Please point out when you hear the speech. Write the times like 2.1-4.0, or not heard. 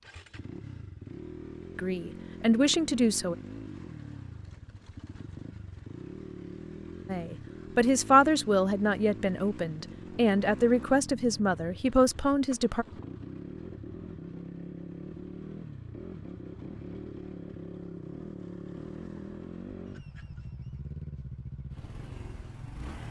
1.8-3.4, 7.0-12.8.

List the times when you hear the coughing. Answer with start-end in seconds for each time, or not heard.
not heard.